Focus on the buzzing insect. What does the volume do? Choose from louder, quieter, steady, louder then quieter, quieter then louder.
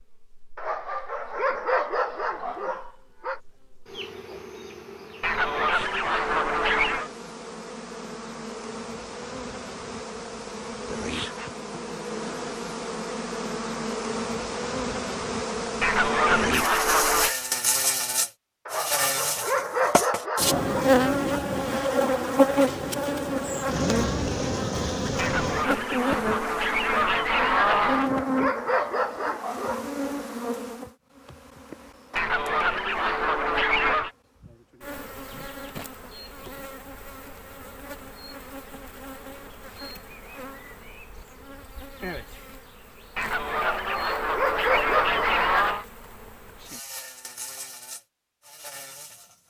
louder then quieter.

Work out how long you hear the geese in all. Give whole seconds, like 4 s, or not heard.
11 s.